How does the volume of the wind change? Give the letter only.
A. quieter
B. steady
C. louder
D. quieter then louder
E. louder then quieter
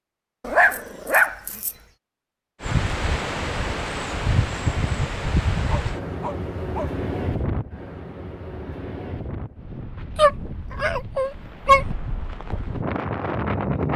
D.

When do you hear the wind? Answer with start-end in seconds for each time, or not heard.
2.6-13.9.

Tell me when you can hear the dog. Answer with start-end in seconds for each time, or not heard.
0.4-1.8, 5.7-7.0, 10.2-11.8.